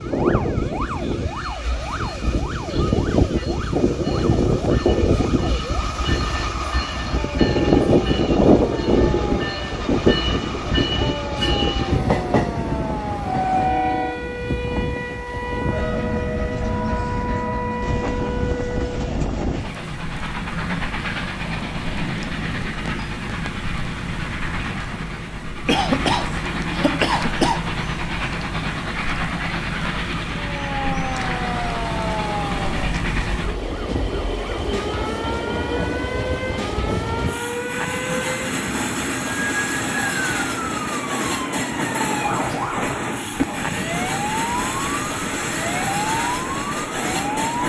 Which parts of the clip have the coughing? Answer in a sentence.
The coughing can be heard from 25.6 to 27.6 s.